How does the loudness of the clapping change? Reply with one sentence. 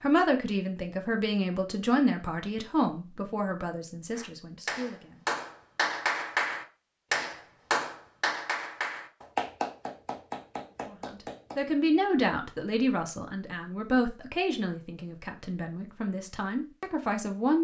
The loudness of the clapping goes down.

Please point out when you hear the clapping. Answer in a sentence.
The clapping can be heard from 4.2 to 11.6 s.